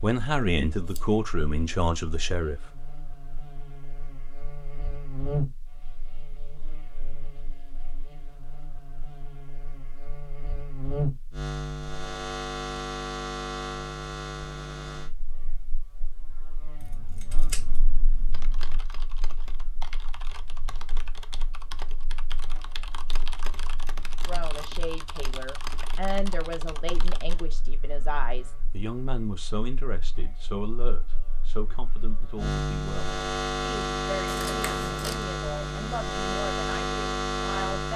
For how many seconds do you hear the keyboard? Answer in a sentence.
The keyboard can be heard for 9 seconds in total.